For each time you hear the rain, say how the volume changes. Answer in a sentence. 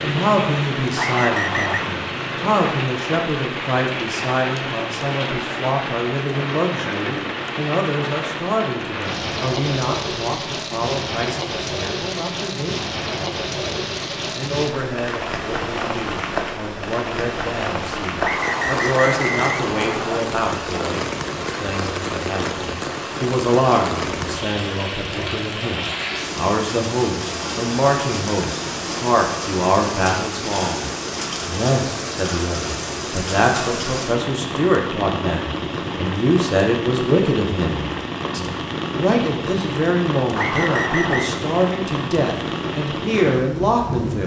You can hear the rain from 0.0 to 44.2 s, at a steady volume.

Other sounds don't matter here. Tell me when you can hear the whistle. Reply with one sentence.
The whistle can be heard from 0.9 to 1.8 s, from 18.2 to 20.2 s and from 40.4 to 41.4 s.